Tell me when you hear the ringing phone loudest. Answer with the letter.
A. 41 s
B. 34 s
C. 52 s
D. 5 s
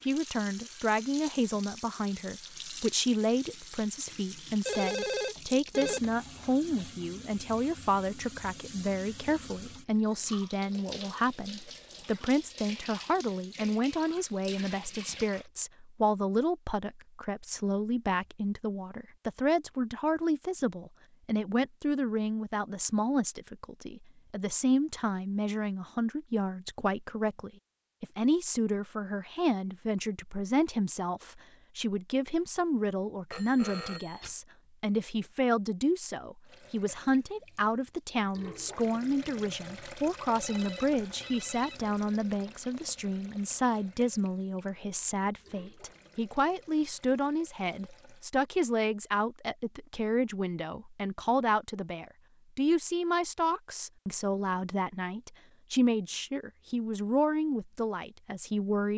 D.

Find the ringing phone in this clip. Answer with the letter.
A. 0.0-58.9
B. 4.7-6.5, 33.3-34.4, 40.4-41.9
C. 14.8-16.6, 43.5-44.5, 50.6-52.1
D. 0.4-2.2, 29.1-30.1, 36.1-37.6
B.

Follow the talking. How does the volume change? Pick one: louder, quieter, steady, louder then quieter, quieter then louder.
steady.